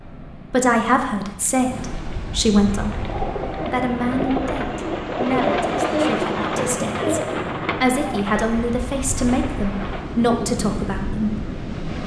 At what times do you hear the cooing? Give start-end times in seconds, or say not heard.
2.6-10.5.